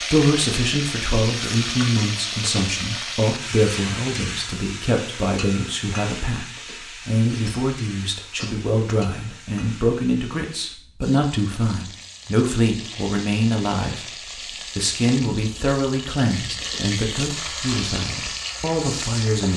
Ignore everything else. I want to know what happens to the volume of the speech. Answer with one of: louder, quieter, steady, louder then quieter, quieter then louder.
steady.